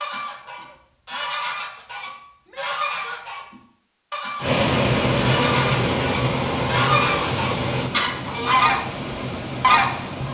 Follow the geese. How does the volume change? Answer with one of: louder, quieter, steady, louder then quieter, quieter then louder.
louder.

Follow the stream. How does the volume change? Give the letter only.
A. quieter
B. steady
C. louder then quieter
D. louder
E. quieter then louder
A.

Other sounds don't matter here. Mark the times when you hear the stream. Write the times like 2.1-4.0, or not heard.
4.4-10.2.